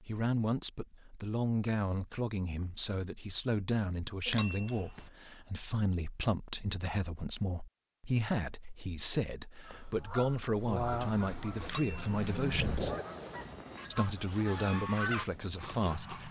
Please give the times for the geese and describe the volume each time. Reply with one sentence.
The geese can be heard from 9.7 to 16.2 s, getting quieter then louder.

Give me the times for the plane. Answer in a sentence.
You can hear the plane from 10.4 to 16.2 s.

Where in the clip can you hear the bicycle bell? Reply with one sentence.
You can hear the bicycle bell from 4.2 to 5.1 s and from 11.6 to 12.2 s.